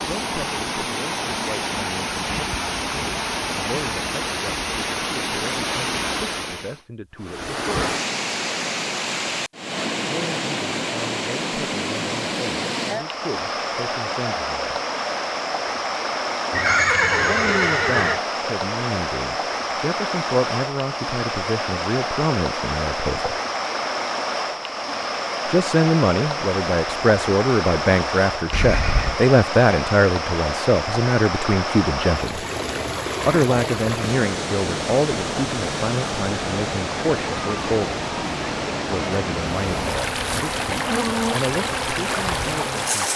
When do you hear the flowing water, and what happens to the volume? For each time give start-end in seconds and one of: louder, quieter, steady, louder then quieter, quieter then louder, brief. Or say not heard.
0.0-43.1 steady.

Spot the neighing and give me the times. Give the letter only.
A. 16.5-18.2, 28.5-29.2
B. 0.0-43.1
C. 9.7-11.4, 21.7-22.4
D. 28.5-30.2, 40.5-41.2
A.